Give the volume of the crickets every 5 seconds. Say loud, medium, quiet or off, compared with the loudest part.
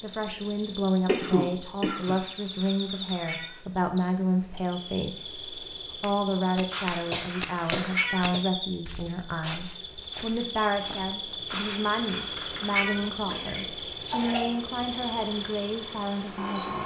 medium, medium, loud, loud.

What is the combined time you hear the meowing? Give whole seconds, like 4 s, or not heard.
5 s.